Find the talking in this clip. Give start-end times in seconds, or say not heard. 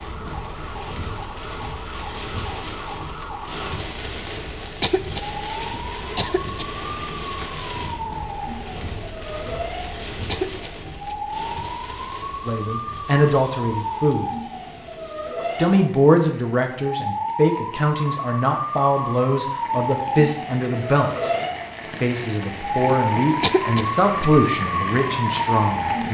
12.4-14.3, 15.6-21.3, 22.0-26.0.